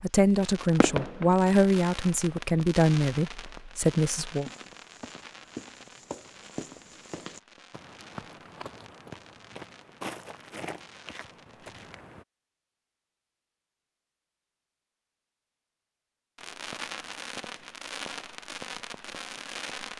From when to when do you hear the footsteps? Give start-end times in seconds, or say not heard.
4.2-12.2.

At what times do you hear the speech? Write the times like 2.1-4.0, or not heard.
0.0-4.5.